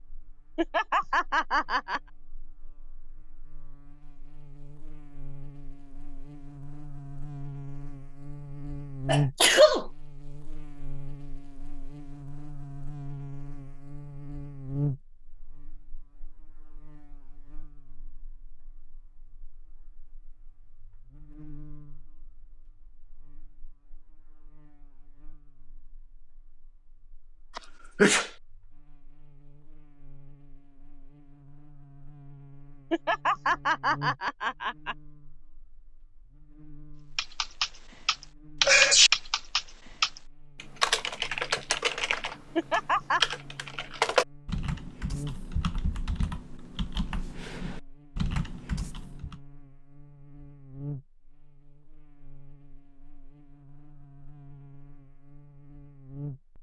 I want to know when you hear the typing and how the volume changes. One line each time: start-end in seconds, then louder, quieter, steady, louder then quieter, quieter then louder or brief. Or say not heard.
37.1-49.4 quieter.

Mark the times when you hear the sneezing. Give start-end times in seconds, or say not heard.
9.1-9.8, 27.6-28.3, 38.6-39.1.